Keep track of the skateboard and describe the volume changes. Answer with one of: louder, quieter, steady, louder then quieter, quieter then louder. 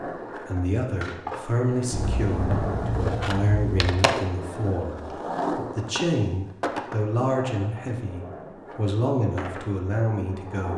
louder then quieter.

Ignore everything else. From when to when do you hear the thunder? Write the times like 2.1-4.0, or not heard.
1.9-4.0.